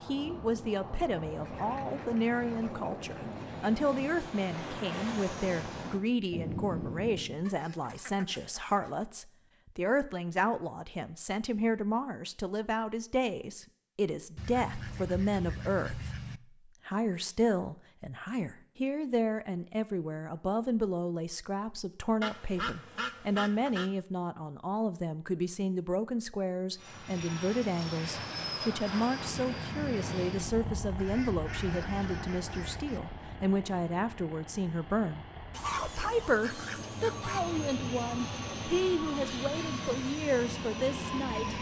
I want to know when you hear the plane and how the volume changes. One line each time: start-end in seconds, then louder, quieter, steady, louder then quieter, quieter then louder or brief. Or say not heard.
0.0-7.5 louder
26.8-41.5 quieter then louder.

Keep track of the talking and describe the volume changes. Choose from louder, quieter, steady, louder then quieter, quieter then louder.
steady.